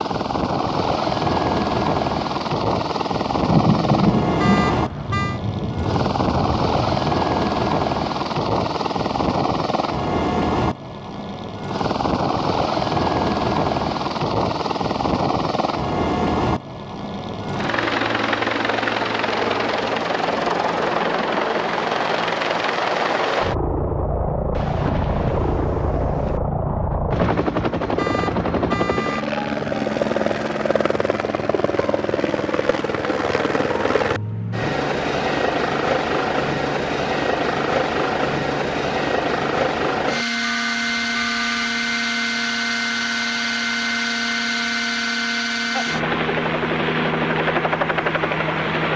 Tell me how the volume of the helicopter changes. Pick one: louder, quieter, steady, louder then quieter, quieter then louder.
steady.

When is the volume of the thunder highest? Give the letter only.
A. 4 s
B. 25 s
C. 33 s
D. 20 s
A.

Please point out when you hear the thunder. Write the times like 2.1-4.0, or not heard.
3.5-7.2, 24.5-26.4.